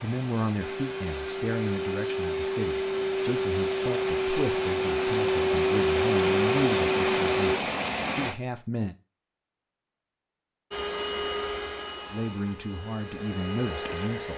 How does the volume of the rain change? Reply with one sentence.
The loudness of the rain goes up.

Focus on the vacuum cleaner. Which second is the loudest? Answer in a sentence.
The loudest moment of the vacuum cleaner is at 6 seconds.